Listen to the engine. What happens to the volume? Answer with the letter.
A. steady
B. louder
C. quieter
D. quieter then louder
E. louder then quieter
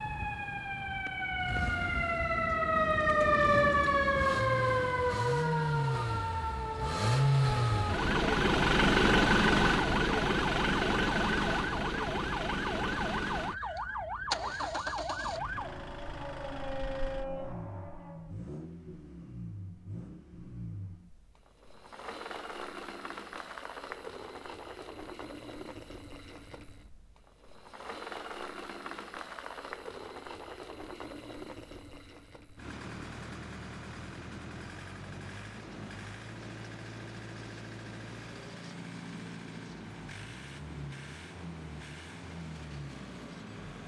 C.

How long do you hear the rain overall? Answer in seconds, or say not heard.
not heard.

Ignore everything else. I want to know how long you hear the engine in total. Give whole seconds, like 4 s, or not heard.
44 s.